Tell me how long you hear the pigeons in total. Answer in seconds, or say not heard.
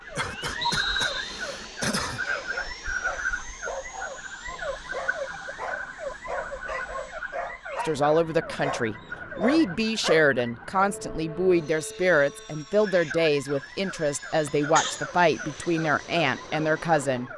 not heard.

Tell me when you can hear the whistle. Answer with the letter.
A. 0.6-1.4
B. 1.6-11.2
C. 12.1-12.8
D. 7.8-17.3
A.